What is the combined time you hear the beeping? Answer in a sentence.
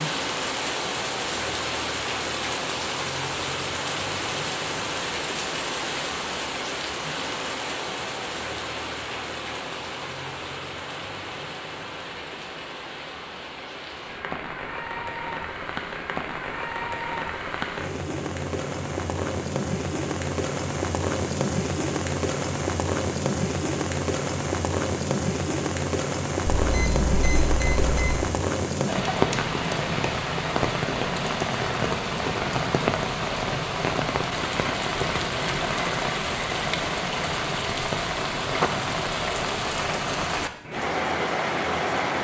The beeping can be heard for 2 seconds in total.